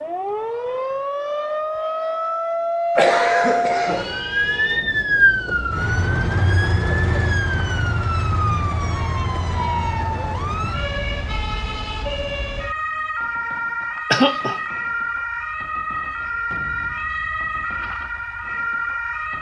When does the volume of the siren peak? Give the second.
5 s.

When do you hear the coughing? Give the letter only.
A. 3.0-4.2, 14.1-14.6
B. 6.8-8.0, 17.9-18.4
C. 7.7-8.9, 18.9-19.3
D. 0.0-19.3
A.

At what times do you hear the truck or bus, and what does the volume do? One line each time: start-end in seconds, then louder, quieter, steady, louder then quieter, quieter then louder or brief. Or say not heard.
not heard.